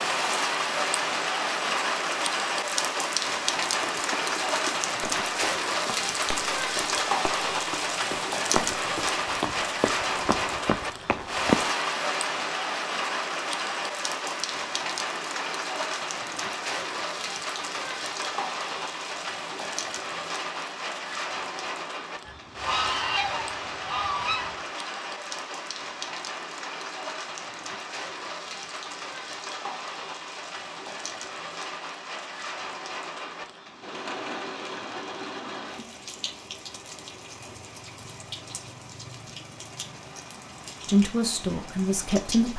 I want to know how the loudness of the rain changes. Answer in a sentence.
The volume of the rain goes down.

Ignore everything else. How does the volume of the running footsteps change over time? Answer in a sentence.
The loudness of the running footsteps goes up.